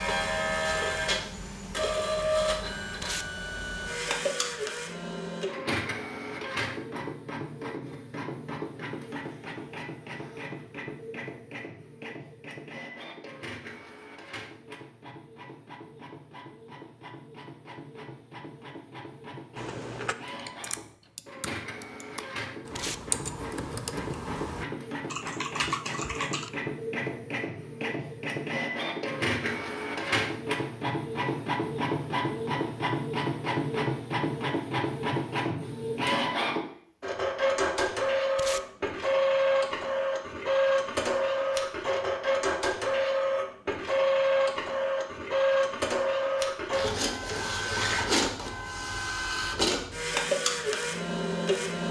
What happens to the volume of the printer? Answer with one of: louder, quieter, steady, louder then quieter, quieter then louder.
quieter then louder.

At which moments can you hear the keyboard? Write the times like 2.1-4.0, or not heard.
19.6-26.5.